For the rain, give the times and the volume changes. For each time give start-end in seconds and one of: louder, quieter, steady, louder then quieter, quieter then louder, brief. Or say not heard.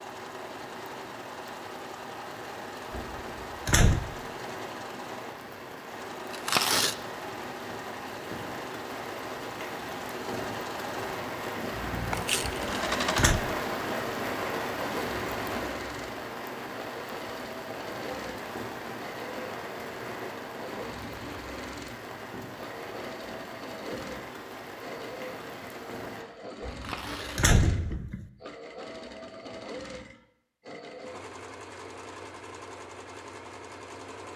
0.0-26.2 louder then quieter.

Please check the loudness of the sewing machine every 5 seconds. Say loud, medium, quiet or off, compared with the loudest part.
medium, medium, loud, medium, medium, medium, medium.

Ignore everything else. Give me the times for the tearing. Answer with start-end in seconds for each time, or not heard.
6.3-7.0, 12.2-12.7, 26.6-27.6.